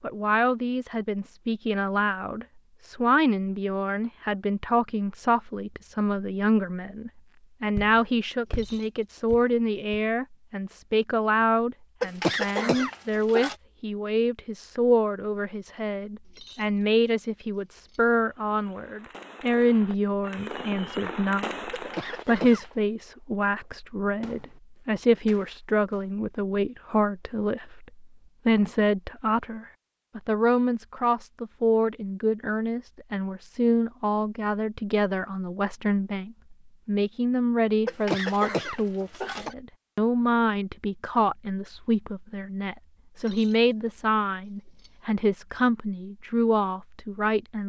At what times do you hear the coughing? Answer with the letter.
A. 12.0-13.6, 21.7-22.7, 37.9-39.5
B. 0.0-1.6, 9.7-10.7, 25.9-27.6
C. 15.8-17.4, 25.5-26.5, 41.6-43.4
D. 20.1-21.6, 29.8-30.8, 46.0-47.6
A.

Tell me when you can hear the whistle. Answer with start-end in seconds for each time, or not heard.
not heard.